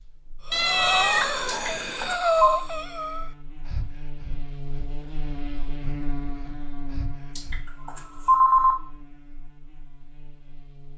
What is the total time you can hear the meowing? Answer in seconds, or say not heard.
2 s.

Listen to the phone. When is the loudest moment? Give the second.
8 s.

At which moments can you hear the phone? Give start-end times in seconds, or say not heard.
1.4-2.6, 7.3-8.8.